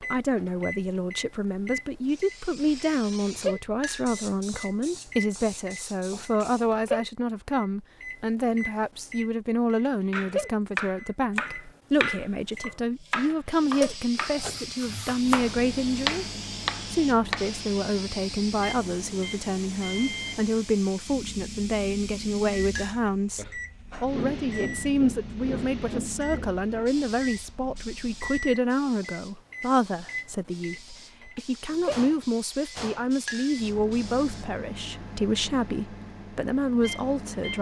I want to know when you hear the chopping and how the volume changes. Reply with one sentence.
The chopping can be heard from 10.1 to 17.6 s, getting quieter then louder.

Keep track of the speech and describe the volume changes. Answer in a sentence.
The volume of the speech stays about the same.